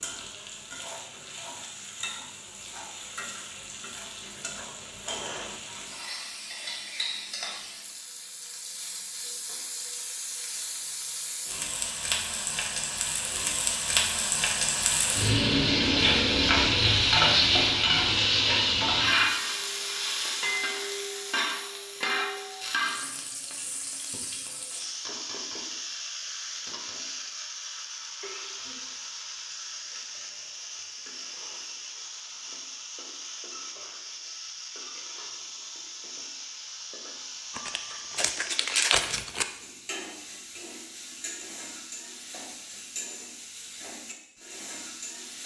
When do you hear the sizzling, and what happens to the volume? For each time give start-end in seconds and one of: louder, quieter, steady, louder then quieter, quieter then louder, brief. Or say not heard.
0.0-45.4 louder then quieter.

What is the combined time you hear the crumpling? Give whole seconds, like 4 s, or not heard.
2 s.